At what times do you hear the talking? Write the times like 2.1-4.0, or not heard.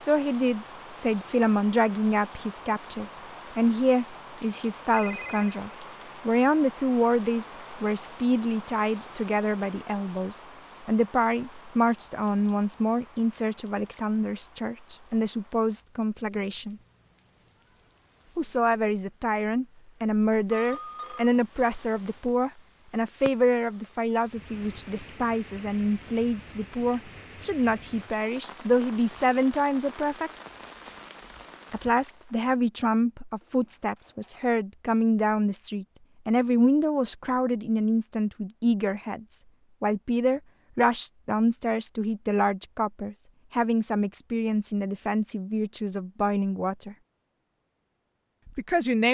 0.0-16.8, 18.4-30.3, 31.7-47.0, 48.5-49.0.